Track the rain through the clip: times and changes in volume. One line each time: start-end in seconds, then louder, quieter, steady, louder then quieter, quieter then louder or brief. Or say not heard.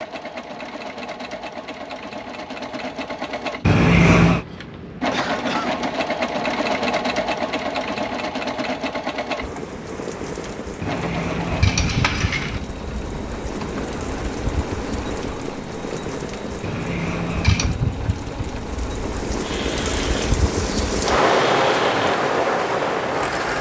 9.4-23.5 louder.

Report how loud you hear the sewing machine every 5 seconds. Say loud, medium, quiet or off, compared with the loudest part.
medium, loud, medium, medium, medium.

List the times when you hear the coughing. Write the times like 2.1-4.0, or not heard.
5.1-5.8.